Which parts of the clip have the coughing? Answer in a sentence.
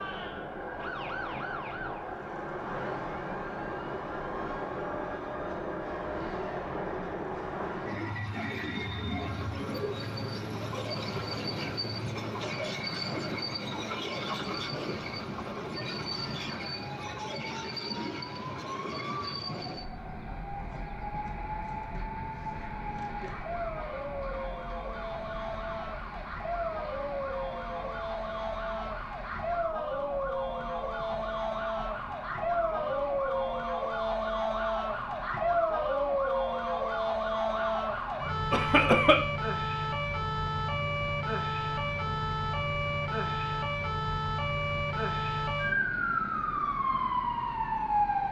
You can hear the coughing from 38.5 to 39.2 s.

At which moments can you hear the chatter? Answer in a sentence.
The chatter can't be heard in this clip.